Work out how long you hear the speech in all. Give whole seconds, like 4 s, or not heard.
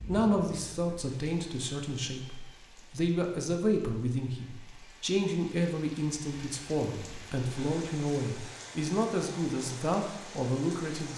11 s.